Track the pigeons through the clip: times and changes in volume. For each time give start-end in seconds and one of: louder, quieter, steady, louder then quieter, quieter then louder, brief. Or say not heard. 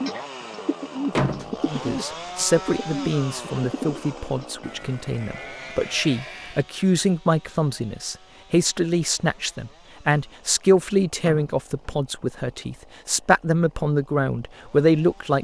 0.0-4.5 quieter then louder.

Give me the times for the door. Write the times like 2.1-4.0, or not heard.
1.1-1.9, 11.2-11.9.